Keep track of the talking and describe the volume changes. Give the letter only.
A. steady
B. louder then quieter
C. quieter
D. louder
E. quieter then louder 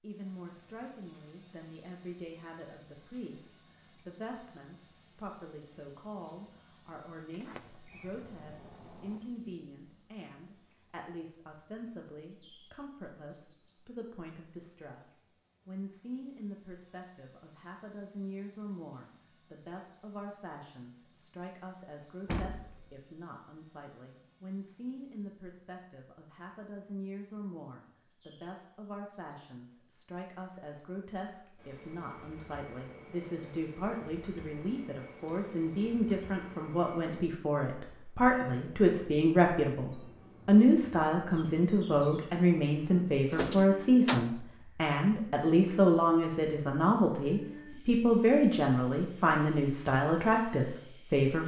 D.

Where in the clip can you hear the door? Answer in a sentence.
You can hear the door from 7.3 to 9.2 s, from 22.2 to 22.9 s and from 42.9 to 44.3 s.